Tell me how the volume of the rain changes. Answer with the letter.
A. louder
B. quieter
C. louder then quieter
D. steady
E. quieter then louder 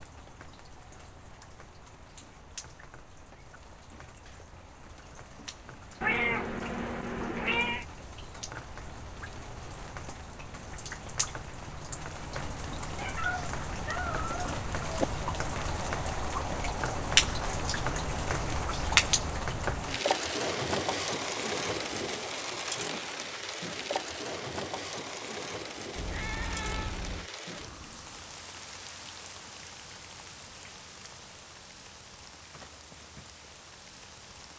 C.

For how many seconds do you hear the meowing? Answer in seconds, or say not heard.
5 s.